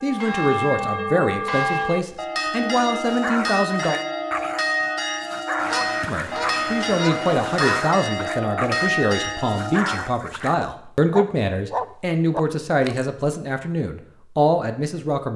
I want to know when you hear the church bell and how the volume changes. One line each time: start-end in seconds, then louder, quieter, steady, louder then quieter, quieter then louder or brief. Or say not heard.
0.0-10.2 steady.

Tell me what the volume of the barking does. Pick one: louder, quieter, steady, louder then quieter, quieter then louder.
louder.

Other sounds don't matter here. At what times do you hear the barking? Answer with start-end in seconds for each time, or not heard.
3.0-13.1.